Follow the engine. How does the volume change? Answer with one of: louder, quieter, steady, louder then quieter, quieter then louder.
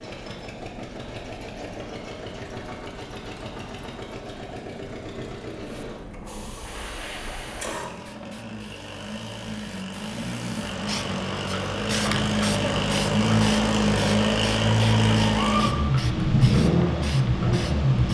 louder.